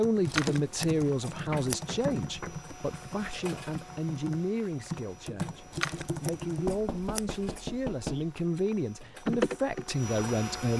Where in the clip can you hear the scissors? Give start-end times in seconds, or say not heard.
0.2-1.9, 5.7-7.7.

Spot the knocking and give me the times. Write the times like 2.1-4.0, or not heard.
1.4-2.6, 6.7-8.2.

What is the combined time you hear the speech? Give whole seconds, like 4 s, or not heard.
11 s.